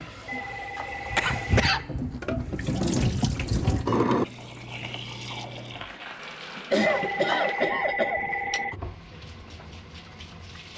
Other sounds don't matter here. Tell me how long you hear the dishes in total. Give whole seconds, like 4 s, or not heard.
not heard.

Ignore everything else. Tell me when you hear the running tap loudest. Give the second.
4 s.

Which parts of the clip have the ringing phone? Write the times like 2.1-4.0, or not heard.
0.2-1.7, 6.8-8.8.